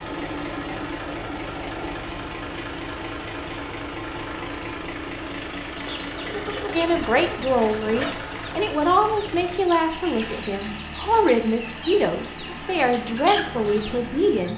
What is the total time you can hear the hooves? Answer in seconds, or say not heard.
not heard.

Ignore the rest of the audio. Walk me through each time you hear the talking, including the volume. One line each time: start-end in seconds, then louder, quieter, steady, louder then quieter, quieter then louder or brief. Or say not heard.
6.7-14.5 steady.